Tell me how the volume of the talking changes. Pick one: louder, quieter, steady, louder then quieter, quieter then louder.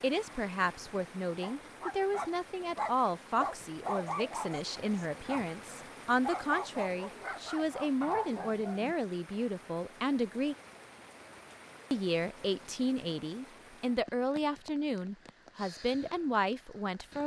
steady.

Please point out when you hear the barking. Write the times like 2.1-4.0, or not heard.
1.4-8.9.